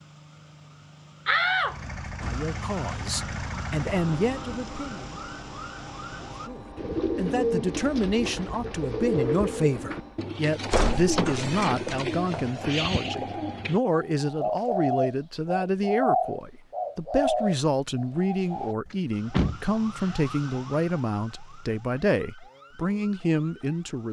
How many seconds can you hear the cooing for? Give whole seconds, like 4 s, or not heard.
12 s.